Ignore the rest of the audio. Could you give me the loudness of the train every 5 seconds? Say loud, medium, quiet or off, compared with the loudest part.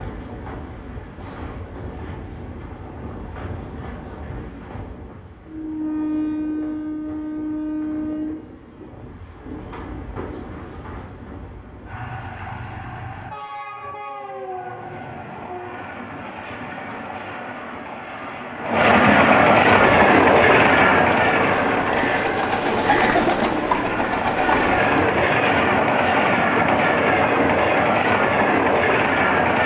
quiet, medium, quiet, loud, loud, loud.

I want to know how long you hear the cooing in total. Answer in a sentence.
The cooing can be heard for 5 seconds in total.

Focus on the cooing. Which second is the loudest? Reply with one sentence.
The loudest moment of the cooing is at 23 seconds.